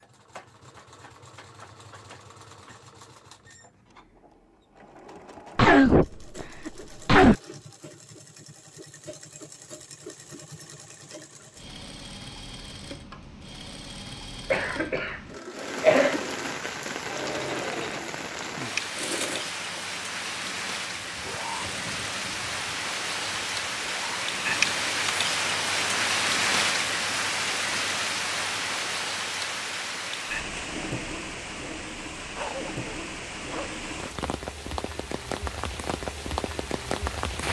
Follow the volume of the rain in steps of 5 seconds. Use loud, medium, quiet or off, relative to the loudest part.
off, off, off, medium, loud, loud, medium, medium.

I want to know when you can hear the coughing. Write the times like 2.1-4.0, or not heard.
5.5-7.3, 14.5-16.2, 32.4-33.8.